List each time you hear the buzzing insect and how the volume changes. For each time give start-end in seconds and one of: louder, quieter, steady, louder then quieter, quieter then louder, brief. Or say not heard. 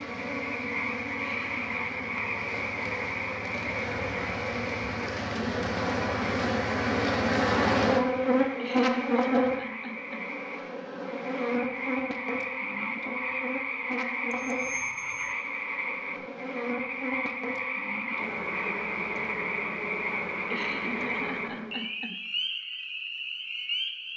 0.0-21.9 louder then quieter.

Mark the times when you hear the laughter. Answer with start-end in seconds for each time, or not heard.
1.1-2.1, 8.6-10.3, 20.5-22.2.